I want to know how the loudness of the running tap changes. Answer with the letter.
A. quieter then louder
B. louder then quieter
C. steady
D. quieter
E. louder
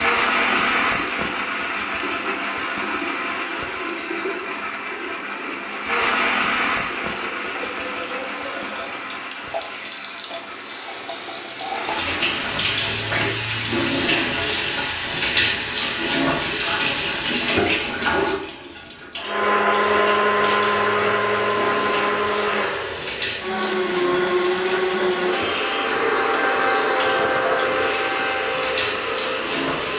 B.